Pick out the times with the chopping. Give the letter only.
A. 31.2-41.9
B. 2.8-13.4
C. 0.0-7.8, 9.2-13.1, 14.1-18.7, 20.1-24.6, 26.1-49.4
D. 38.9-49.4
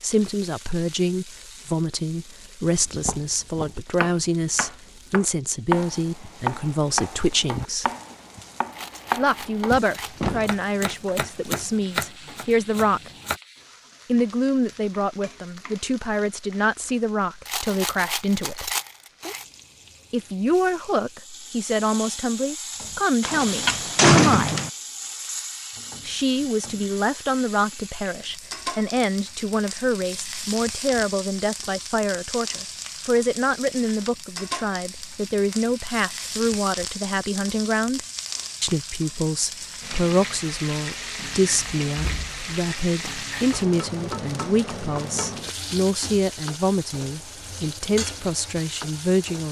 B.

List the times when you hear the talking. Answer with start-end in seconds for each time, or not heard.
0.0-7.8, 9.2-13.1, 14.1-18.7, 20.1-24.6, 26.1-49.4.